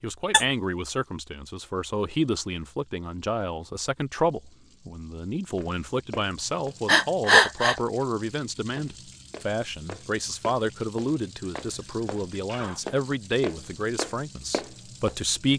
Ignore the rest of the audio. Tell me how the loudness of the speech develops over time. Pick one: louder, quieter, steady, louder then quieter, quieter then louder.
steady.